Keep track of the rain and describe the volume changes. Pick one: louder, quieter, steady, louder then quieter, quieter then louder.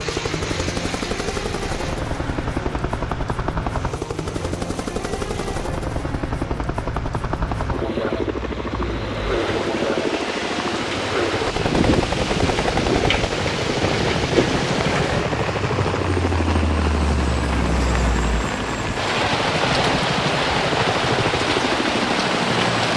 louder.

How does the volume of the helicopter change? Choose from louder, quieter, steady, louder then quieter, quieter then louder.
steady.